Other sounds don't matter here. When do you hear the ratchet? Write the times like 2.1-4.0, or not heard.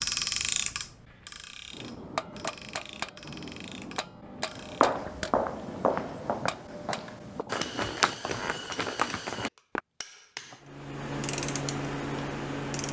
0.0-5.0, 10.6-12.8.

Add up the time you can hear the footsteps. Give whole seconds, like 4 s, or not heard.
5 s.